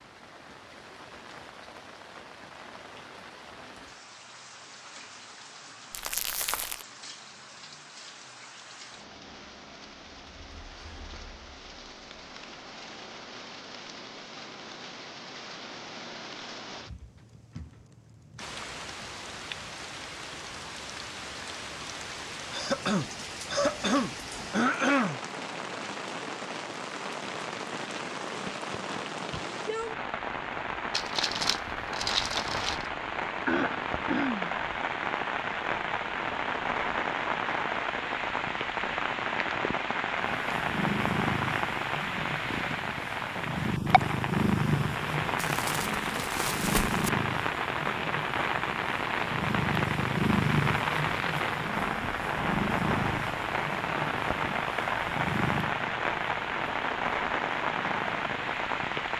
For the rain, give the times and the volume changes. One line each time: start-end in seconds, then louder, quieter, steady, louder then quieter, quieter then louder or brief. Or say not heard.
0.0-59.1 louder.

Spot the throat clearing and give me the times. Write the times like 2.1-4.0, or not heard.
22.5-25.2, 33.5-34.5.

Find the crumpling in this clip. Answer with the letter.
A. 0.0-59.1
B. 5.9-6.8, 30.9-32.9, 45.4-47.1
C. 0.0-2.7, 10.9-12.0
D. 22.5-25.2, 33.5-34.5
B.